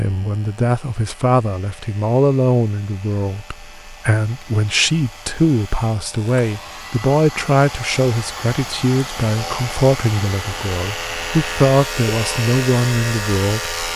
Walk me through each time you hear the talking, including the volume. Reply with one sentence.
The talking can be heard from 0.0 to 13.9 s, at a steady volume.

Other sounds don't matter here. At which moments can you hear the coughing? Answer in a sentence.
You can't hear the coughing here.